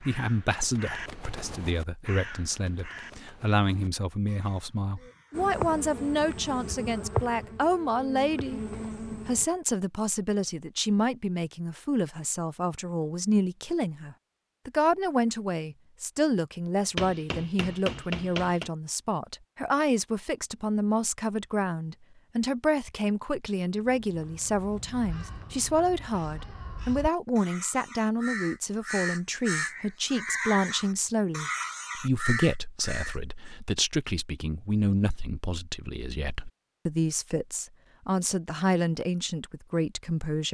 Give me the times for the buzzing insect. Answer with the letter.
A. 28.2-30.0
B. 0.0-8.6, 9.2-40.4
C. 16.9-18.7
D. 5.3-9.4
D.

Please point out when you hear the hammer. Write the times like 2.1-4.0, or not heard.
16.9-18.7.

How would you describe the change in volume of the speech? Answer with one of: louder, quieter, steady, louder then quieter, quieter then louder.
steady.